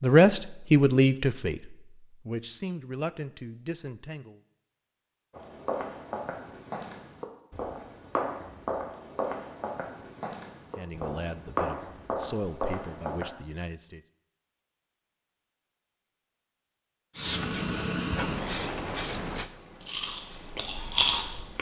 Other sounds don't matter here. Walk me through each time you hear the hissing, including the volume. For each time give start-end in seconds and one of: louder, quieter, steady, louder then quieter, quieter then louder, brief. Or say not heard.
17.1-21.5 quieter.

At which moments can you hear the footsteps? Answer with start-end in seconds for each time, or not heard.
5.3-13.3.